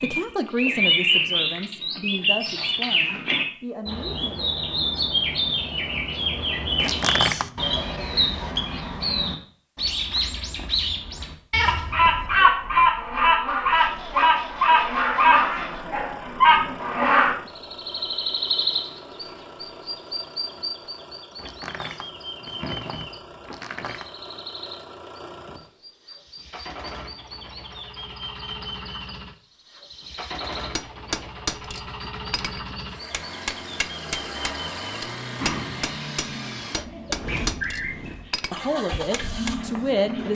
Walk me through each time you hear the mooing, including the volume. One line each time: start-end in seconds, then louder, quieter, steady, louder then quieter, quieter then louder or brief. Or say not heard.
not heard.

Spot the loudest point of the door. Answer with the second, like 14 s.
7 s.